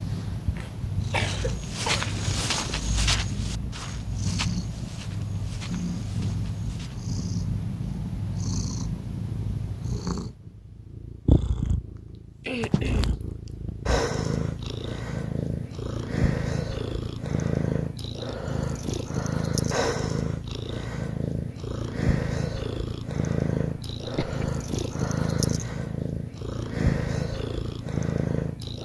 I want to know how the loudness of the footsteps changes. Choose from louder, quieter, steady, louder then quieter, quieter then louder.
quieter.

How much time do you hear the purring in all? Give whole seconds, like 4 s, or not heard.
29 s.